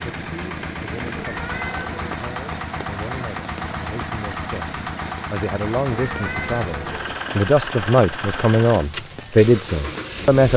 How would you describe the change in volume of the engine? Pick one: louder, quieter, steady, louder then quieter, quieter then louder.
steady.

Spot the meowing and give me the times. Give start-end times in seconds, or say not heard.
1.1-2.1, 5.9-7.2.